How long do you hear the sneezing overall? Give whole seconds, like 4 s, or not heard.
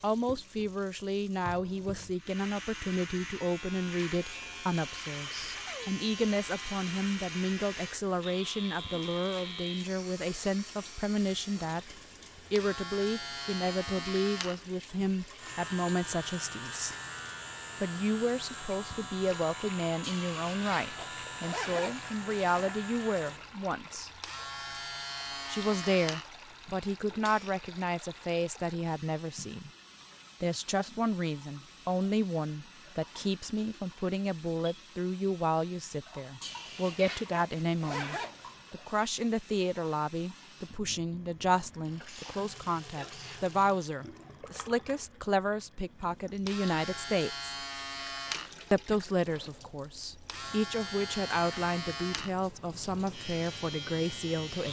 2 s.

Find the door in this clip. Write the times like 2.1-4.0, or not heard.
not heard.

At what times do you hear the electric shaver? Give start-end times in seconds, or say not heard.
2.1-27.6, 46.2-54.6.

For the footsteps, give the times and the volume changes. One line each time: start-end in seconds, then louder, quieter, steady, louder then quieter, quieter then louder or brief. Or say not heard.
not heard.